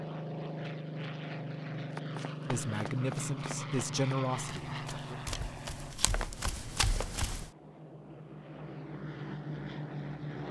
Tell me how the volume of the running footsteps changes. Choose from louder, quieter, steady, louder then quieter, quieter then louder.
quieter then louder.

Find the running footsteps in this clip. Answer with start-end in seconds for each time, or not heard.
1.9-7.5.